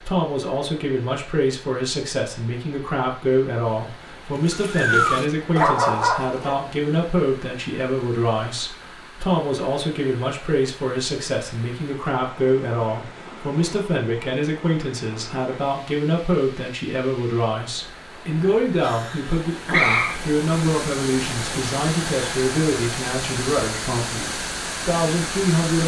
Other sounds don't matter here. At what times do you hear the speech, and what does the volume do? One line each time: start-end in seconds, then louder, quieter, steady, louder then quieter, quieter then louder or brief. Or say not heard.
0.0-25.8 steady.